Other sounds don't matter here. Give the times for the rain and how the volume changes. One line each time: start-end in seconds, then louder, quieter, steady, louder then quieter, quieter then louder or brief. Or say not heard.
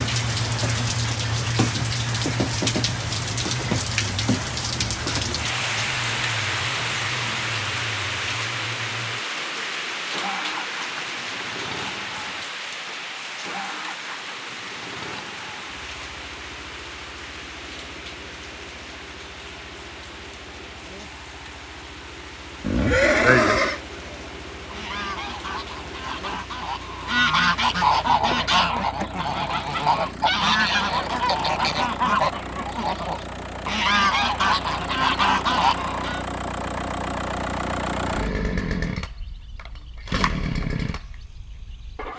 0.0-28.2 quieter.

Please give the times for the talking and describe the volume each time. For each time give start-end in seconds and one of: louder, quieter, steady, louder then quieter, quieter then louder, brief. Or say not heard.
not heard.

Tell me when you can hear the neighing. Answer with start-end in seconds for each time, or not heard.
22.6-23.8.